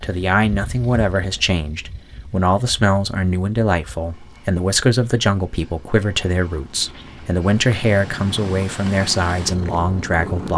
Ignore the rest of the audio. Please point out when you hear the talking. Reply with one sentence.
The talking can be heard from 0.0 to 10.5 s.